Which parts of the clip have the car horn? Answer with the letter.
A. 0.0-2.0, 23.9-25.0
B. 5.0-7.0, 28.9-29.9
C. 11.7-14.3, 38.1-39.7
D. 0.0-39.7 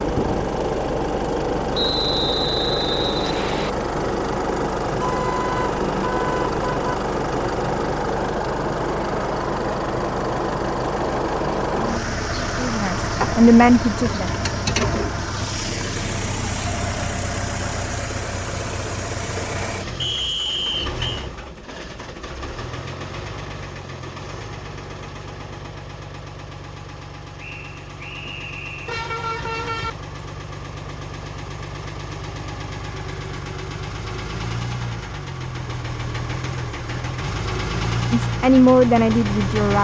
B.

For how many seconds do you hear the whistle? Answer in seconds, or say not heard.
5 s.